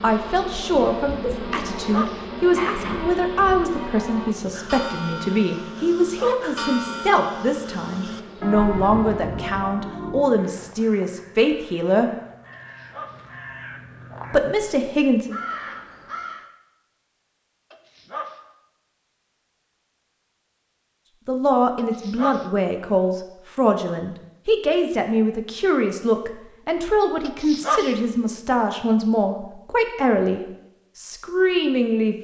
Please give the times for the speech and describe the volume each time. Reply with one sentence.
The speech can be heard from 0.0 to 12.2 s, at a steady volume; briefly from 14.3 to 15.4 s; and from 21.2 to 32.1 s, at a steady volume.